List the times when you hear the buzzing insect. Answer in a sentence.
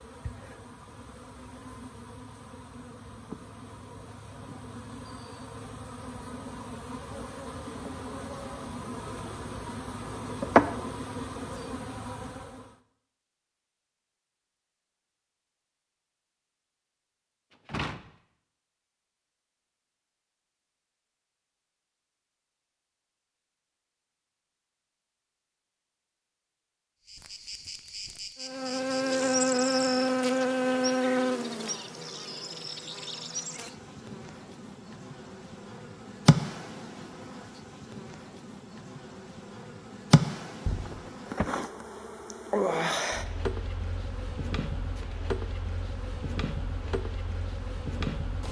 You can hear the buzzing insect from 0.0 to 12.8 s and from 27.1 to 48.4 s.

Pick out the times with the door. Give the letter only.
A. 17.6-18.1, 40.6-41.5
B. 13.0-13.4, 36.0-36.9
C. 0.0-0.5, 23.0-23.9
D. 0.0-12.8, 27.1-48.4
A.